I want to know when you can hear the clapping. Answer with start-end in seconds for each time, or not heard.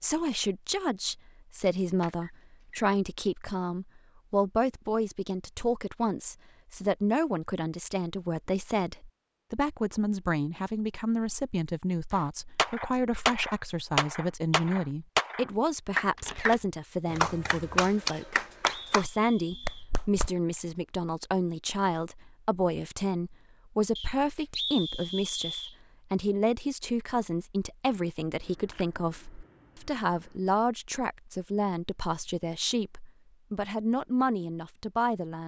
12.1-20.3.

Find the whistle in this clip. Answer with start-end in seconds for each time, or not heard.
2.2-2.9, 18.1-19.9, 23.9-25.8.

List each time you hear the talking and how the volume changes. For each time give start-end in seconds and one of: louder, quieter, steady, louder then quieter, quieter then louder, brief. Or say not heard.
0.0-35.4 steady.